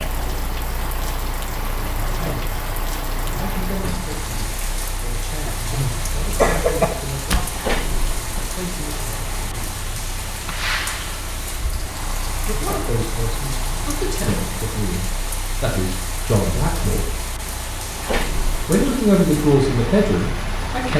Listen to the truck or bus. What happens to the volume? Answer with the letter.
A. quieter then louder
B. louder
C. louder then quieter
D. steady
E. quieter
D.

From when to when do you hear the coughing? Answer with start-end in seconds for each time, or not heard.
5.5-6.8.